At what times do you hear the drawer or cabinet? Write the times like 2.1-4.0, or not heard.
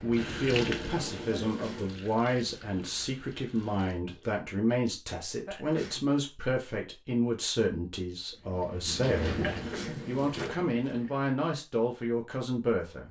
0.5-2.0, 8.9-10.6.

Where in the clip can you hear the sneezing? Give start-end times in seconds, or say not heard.
1.4-1.9, 5.5-6.0, 9.4-10.1.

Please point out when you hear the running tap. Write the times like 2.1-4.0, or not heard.
0.0-4.2, 8.3-11.3.